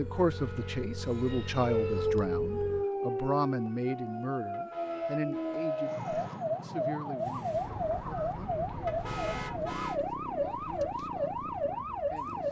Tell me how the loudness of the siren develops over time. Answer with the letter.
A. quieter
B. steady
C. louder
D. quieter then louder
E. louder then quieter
B.